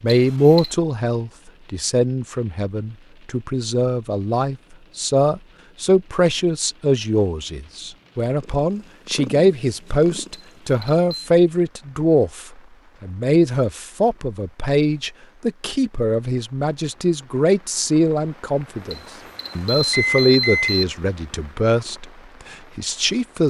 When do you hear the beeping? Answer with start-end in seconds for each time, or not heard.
0.1-0.8, 10.3-11.3, 18.9-20.9.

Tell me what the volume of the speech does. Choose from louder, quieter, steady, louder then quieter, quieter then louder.
steady.